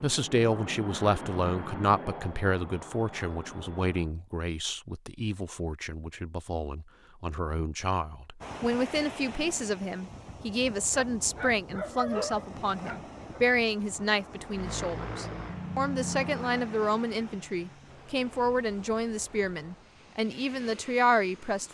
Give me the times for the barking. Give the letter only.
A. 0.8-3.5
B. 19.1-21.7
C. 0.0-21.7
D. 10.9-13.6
D.